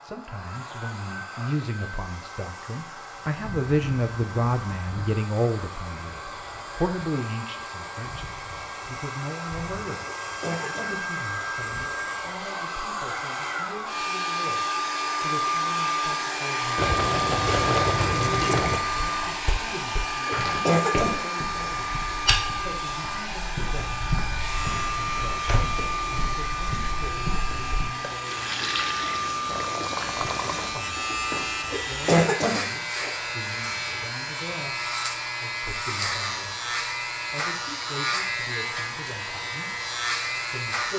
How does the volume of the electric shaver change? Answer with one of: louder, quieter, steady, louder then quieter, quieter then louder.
louder.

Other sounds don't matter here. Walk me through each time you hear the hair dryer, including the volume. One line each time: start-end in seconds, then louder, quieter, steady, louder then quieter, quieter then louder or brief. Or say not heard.
0.0-40.8 louder then quieter.